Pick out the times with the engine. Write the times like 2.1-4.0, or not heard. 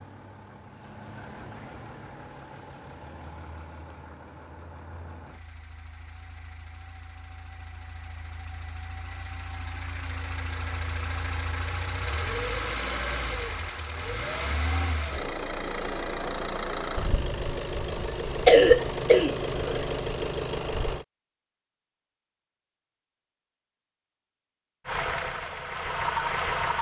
0.0-21.1, 24.9-26.7.